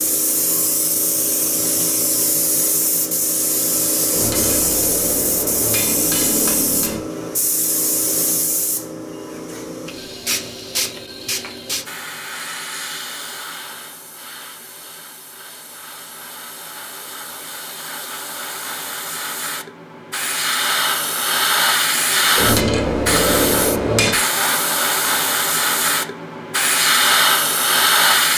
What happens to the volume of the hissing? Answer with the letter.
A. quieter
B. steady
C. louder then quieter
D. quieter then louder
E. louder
D.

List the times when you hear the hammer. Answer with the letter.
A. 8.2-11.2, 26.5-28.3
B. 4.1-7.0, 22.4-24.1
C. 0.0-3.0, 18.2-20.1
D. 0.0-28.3
B.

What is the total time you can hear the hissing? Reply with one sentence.
The hissing can be heard for 28 seconds in total.